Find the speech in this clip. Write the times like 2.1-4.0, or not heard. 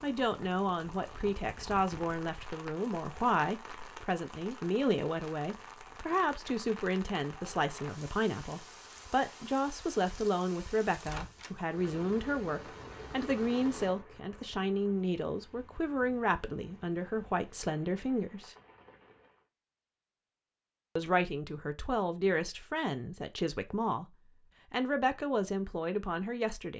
0.0-18.6, 20.9-26.7.